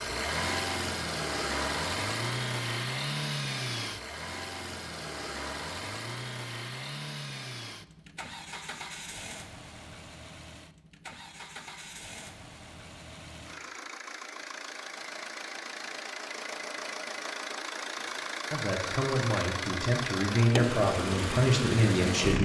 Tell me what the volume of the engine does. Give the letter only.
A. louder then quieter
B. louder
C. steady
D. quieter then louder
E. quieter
D.